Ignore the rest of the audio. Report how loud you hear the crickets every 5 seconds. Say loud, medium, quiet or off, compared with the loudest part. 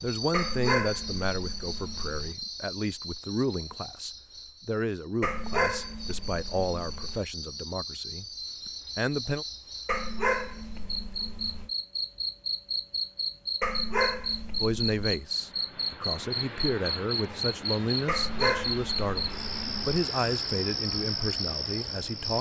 medium, medium, loud, loud, loud.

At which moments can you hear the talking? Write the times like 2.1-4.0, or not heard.
0.0-9.4, 14.6-22.3.